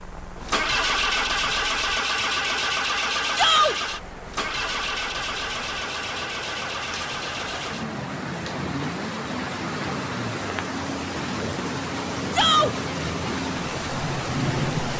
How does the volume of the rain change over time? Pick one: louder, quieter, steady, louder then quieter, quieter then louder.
louder.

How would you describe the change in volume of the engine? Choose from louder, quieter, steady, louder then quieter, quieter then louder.
quieter.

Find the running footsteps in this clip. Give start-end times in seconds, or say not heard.
not heard.